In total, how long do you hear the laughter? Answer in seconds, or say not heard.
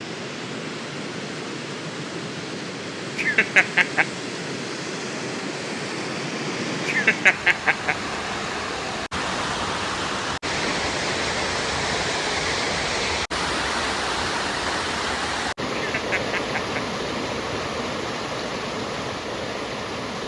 3 s.